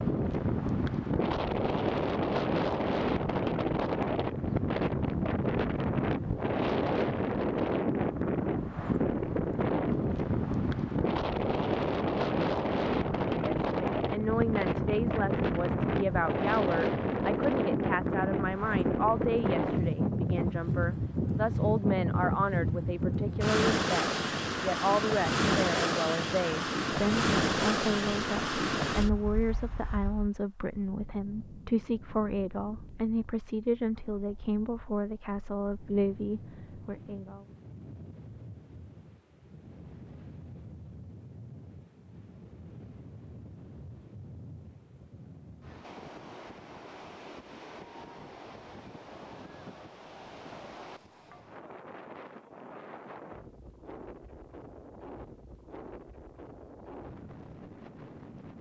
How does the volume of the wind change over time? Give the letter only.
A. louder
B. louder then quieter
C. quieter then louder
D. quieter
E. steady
D.